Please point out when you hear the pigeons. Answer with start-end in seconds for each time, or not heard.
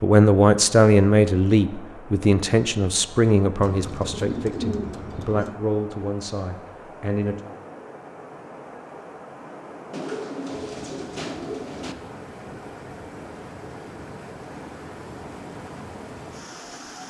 3.6-5.5, 9.9-11.9.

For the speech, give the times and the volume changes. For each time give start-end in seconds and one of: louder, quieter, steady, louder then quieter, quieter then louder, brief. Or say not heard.
0.0-7.3 quieter.